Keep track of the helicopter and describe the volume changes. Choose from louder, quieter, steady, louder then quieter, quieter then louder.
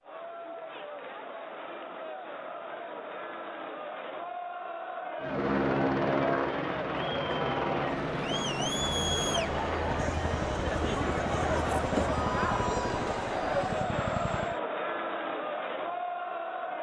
quieter.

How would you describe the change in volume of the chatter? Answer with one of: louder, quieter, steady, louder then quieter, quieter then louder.
louder.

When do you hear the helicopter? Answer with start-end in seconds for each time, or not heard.
5.2-14.6.